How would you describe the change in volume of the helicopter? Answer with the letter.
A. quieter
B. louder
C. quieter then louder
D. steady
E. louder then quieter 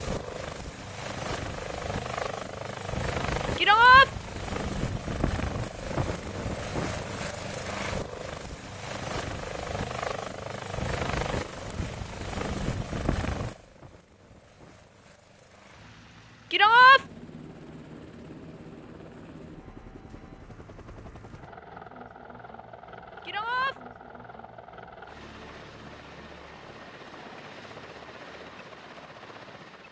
A.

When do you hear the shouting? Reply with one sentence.
You can hear the shouting from 3.5 to 4.1 s, from 16.5 to 17.0 s and from 23.2 to 23.8 s.